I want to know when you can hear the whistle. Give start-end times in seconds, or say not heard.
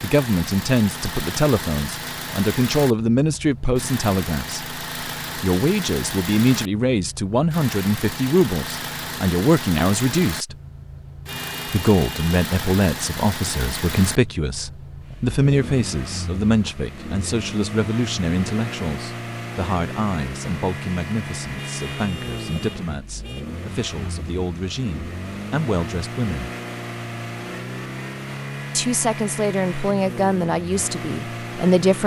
not heard.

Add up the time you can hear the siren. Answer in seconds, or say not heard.
not heard.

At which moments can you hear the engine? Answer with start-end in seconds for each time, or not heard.
0.0-32.0.